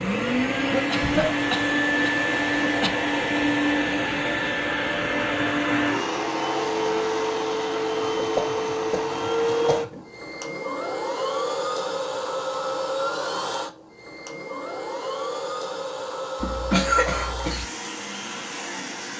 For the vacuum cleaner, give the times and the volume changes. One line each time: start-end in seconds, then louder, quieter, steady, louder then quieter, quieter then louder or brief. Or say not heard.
0.0-19.1 quieter.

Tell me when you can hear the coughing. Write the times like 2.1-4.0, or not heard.
0.9-2.9, 8.0-10.1, 16.4-17.6.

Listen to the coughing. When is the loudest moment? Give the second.
17 s.